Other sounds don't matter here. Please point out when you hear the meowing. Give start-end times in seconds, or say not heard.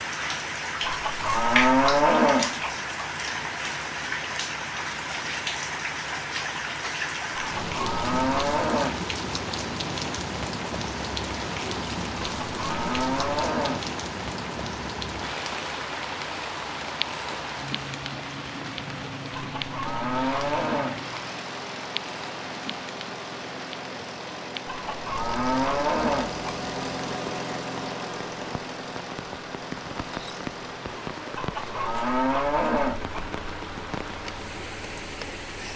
not heard.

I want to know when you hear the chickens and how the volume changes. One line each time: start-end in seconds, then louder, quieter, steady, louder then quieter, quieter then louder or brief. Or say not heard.
not heard.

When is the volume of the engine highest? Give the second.
27 s.